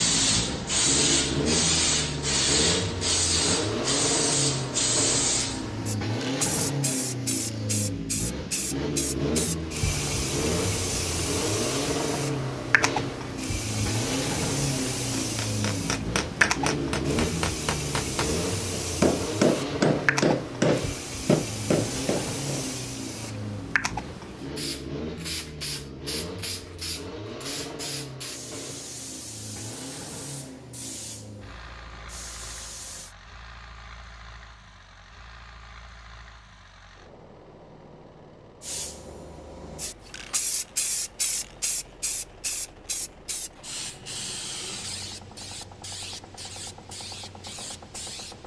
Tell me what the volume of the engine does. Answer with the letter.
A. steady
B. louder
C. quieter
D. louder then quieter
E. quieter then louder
C.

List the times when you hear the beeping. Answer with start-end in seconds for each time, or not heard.
not heard.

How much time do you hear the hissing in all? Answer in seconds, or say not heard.
43 s.